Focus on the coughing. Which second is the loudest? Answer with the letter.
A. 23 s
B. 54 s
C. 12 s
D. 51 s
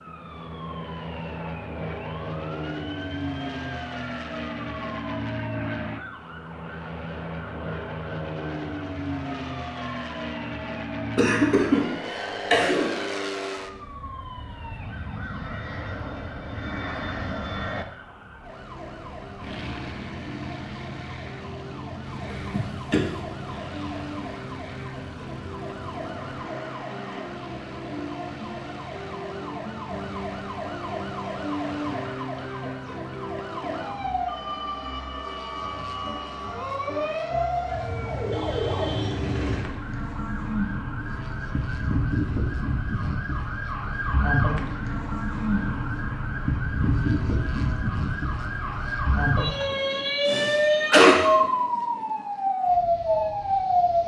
D.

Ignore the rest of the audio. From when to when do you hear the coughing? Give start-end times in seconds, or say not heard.
11.2-11.8, 12.5-12.9, 22.5-23.1, 50.2-51.1.